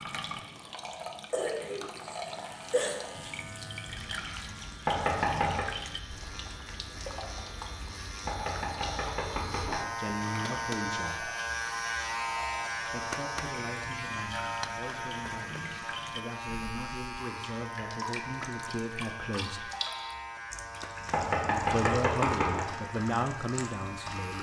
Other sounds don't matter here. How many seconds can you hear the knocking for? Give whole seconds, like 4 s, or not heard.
4 s.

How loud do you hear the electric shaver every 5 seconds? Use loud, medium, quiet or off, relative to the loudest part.
quiet, medium, loud, medium, medium.